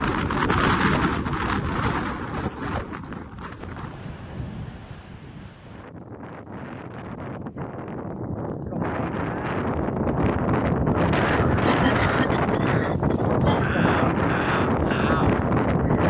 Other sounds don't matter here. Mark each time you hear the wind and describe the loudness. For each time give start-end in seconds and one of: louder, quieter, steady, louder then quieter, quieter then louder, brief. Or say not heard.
0.0-16.0 quieter then louder.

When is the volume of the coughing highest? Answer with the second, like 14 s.
12 s.